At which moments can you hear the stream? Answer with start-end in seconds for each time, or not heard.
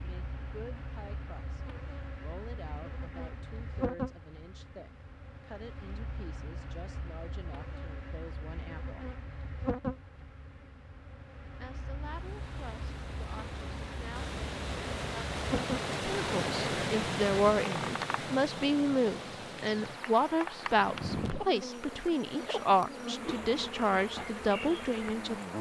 12.0-25.5.